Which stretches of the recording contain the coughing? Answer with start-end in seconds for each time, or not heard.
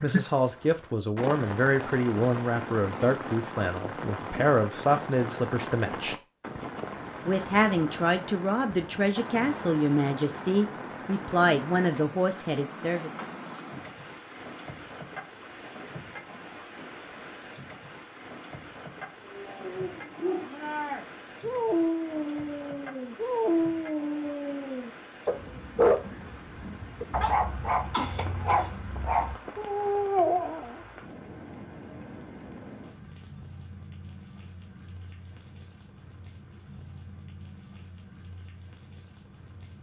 27.9-28.7.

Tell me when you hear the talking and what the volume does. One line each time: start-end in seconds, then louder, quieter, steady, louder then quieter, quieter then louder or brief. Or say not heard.
0.0-6.2 steady
7.2-13.1 steady.